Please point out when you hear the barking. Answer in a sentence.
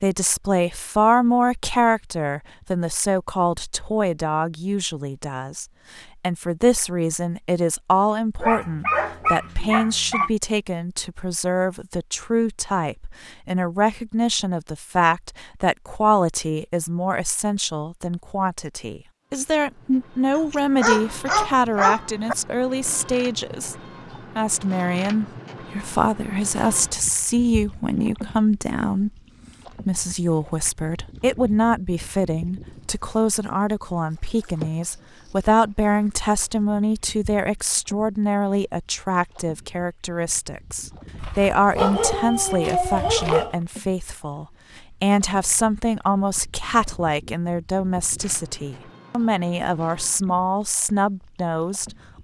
The barking can be heard from 8.4 to 10.3 s, from 20.4 to 22.4 s and from 41.1 to 43.5 s.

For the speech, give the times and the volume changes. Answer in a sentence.
The speech can be heard from 0.0 to 23.8 s, at a steady volume; from 24.4 to 29.1 s, at a steady volume; and from 29.9 to 52.2 s, at a steady volume.